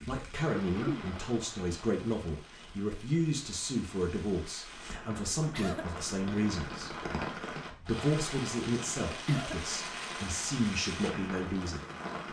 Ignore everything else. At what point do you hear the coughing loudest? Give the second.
1 s.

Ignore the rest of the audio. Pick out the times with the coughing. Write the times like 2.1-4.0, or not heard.
0.6-1.1, 5.5-5.9, 9.2-10.2.